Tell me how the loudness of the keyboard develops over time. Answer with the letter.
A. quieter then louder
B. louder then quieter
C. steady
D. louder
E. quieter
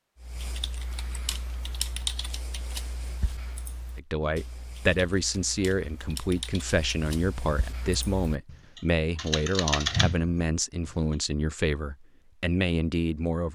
A.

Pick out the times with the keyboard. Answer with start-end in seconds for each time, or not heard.
0.2-10.9.